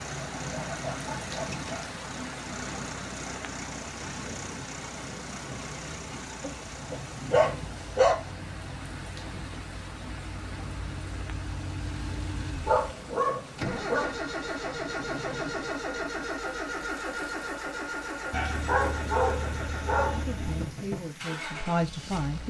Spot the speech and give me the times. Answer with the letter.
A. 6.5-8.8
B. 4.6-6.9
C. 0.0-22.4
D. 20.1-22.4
D.